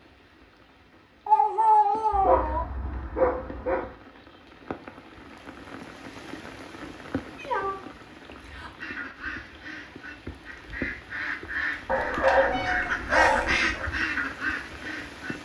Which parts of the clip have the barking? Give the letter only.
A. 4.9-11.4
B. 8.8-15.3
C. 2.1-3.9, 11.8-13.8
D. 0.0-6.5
C.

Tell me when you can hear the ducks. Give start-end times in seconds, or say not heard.
8.8-15.3.